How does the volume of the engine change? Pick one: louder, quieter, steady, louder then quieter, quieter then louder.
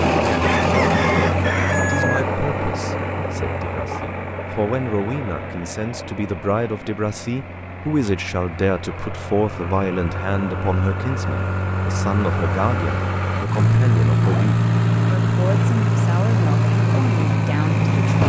quieter then louder.